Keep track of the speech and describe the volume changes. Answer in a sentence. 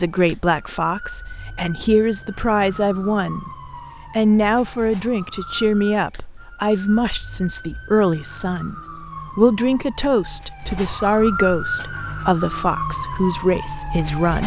The loudness of the speech stays about the same.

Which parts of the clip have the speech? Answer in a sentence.
The speech can be heard from 0.0 to 3.5 s, from 4.1 to 8.8 s and from 9.3 to 14.4 s.